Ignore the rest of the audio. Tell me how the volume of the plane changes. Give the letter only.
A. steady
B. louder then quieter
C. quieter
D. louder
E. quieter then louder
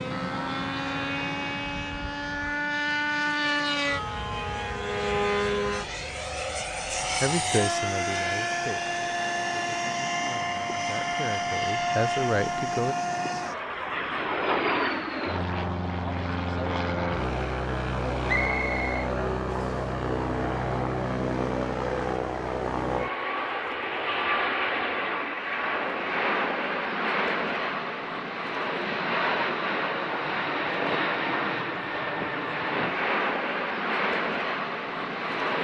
A.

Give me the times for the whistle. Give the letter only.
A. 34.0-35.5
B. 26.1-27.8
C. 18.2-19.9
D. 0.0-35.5
C.